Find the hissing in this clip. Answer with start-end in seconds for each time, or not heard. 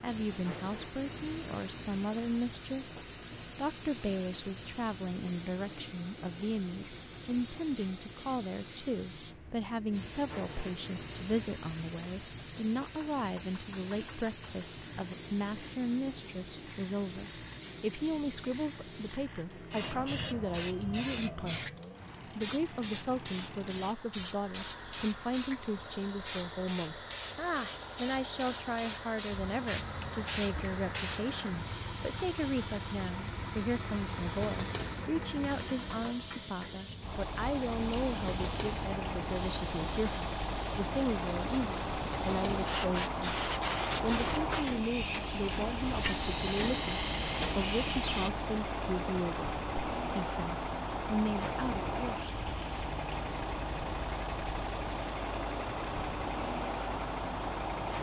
0.0-48.3.